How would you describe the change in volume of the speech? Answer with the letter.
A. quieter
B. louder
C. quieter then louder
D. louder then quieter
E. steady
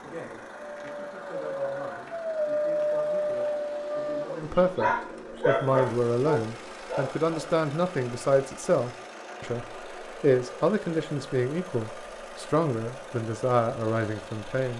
B.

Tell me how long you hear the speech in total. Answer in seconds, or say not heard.
15 s.